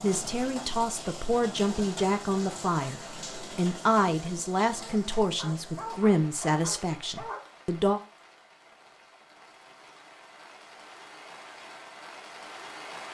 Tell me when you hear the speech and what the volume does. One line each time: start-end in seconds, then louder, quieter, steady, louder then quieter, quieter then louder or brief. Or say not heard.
0.0-8.0 steady.